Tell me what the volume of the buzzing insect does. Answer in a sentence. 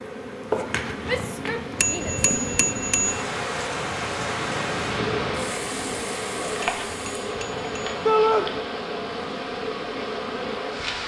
The volume of the buzzing insect stays about the same.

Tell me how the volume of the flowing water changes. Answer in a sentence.
The volume of the flowing water goes up, then down.